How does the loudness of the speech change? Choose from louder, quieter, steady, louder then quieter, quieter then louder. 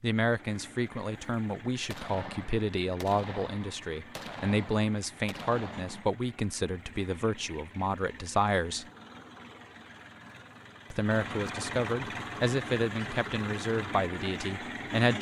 steady.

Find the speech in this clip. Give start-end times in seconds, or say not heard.
0.0-8.8, 10.9-15.1.